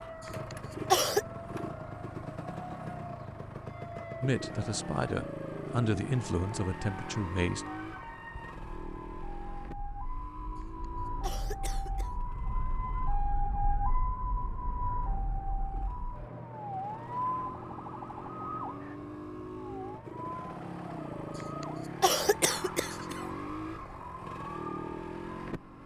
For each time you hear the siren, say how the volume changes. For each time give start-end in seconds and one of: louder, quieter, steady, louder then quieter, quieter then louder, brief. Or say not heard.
0.0-25.8 louder then quieter.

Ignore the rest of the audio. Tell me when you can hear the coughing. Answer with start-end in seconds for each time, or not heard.
0.2-1.2, 10.6-12.1, 21.4-23.2.